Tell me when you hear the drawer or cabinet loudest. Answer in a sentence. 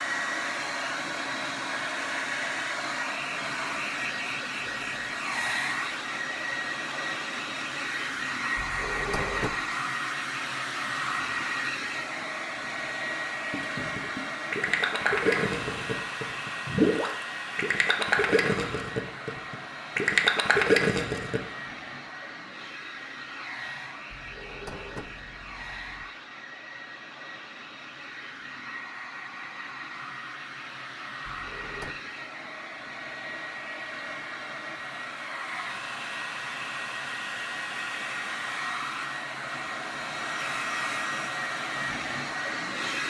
The loudest moment of the drawer or cabinet is at 9 seconds.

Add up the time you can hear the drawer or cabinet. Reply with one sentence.
You can hear the drawer or cabinet for 4 seconds altogether.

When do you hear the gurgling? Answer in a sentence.
You can hear the gurgling from 13.5 to 21.4 s.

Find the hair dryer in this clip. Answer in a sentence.
The hair dryer can be heard from 0.0 to 43.0 s.